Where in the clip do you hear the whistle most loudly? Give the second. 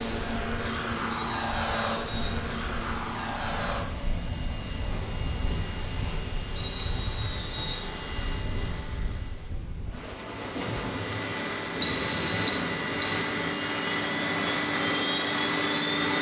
12 s.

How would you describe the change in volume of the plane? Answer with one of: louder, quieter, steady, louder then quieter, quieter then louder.
quieter then louder.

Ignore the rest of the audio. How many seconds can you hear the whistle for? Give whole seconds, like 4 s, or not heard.
4 s.